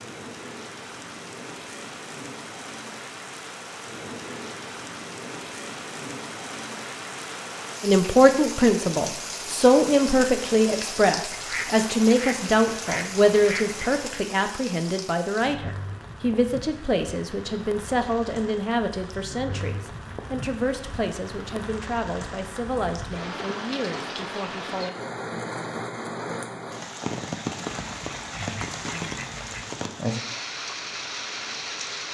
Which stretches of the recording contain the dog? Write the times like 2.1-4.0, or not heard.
not heard.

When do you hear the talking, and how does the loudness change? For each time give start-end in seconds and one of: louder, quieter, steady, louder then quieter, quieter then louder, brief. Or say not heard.
7.8-24.9 quieter.